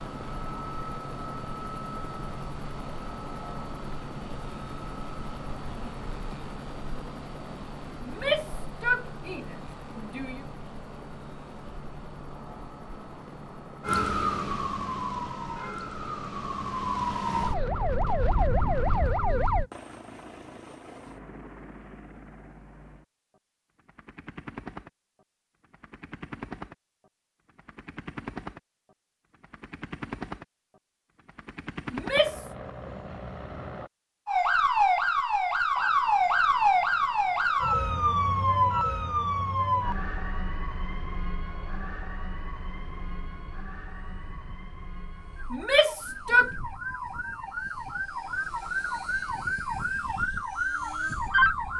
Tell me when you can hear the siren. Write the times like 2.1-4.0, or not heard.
13.8-19.6, 34.2-51.7.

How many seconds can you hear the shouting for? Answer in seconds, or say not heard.
4 s.